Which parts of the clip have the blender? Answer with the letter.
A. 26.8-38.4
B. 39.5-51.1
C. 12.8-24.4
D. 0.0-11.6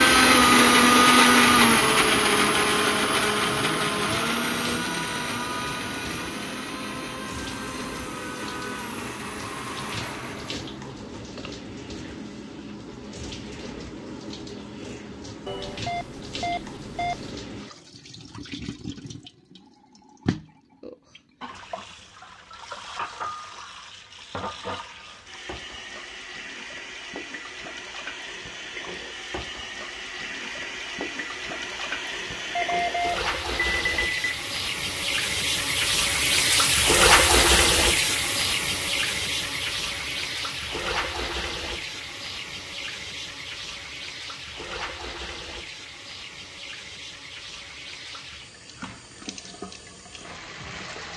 D.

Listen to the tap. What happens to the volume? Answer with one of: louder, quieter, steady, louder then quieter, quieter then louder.
louder then quieter.